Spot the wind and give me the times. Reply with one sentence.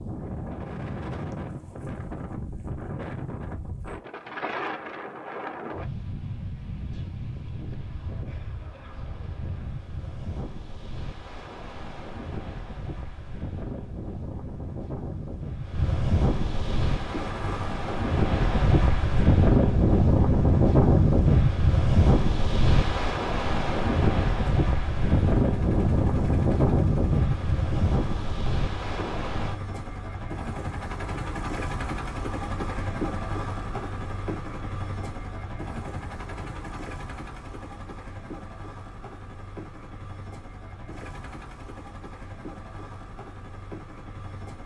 The wind can be heard from 0.0 to 29.6 s.